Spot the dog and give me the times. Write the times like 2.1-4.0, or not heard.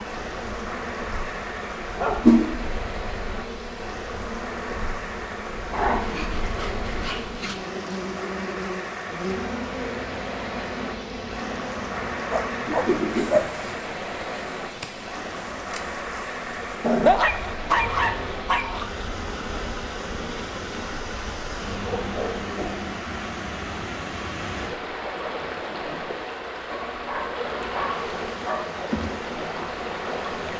1.9-2.4, 5.7-7.7, 11.8-13.8, 16.8-18.9, 21.6-22.8, 26.7-28.7.